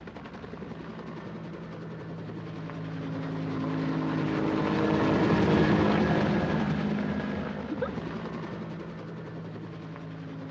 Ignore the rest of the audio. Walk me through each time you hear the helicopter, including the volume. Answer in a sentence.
The helicopter can be heard from 0.0 to 10.4 s, getting louder then quieter.